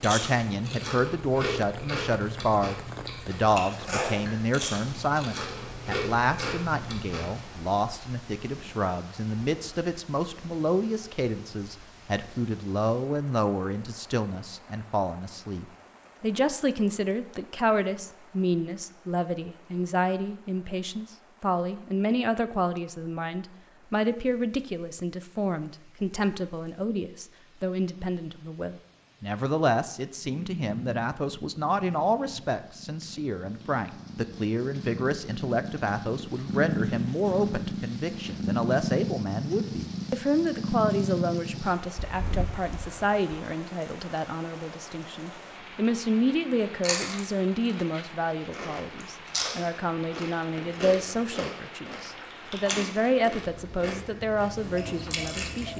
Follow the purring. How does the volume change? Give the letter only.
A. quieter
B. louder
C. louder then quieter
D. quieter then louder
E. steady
B.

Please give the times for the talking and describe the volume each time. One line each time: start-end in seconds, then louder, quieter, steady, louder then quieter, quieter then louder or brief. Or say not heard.
0.0-55.7 steady.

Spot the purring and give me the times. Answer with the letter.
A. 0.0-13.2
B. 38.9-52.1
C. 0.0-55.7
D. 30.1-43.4
D.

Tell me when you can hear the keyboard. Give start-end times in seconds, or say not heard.
not heard.